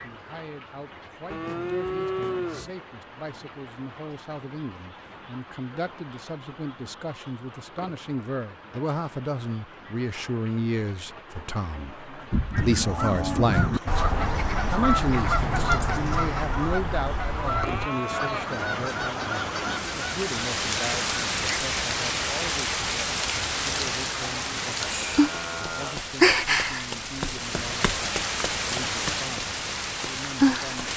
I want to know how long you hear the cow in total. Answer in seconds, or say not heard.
6 s.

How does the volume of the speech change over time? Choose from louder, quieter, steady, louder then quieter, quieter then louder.
louder then quieter.